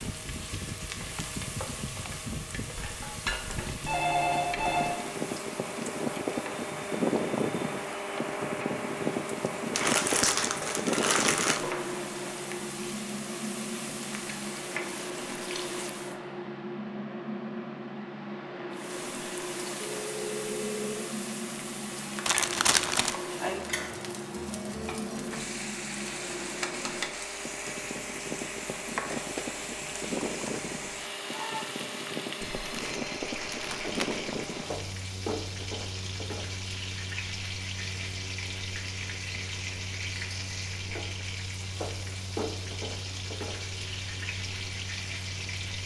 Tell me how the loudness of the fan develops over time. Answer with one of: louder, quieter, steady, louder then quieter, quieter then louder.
quieter.